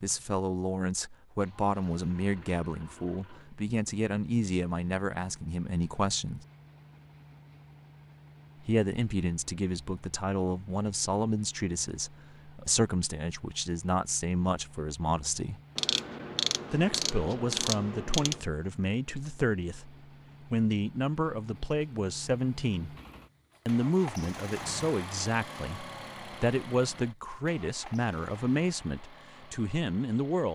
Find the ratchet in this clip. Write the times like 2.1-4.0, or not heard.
15.8-18.4.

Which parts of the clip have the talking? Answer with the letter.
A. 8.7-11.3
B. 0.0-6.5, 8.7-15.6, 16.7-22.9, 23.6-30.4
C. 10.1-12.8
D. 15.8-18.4
B.